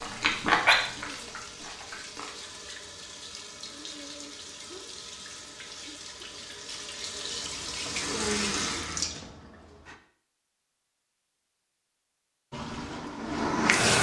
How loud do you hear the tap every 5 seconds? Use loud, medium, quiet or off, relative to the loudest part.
quiet, medium, loud.